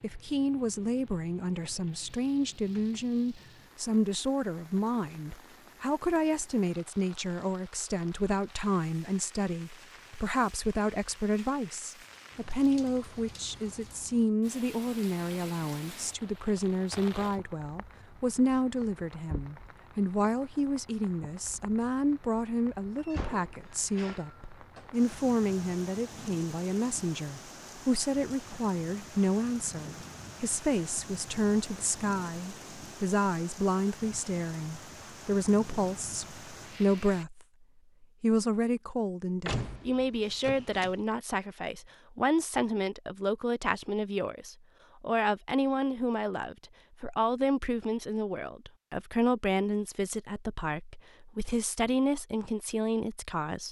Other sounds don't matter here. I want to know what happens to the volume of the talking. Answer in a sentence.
The volume of the talking stays about the same.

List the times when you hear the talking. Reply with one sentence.
You can hear the talking from 0.0 to 53.6 s.